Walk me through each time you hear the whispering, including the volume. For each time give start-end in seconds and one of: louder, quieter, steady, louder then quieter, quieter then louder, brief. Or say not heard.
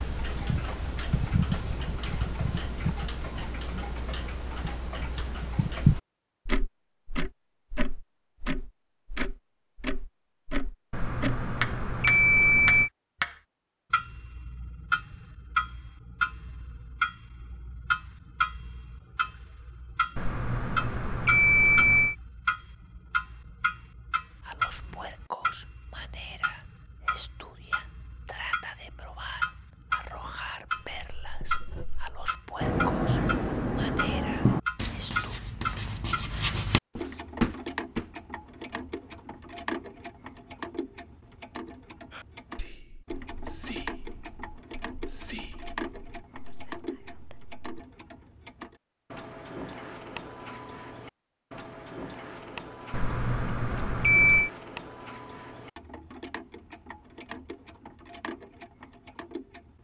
24.4-35.4 steady
42.1-47.5 louder then quieter.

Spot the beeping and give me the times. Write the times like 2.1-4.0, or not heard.
10.9-12.9, 20.1-22.1, 52.9-54.5.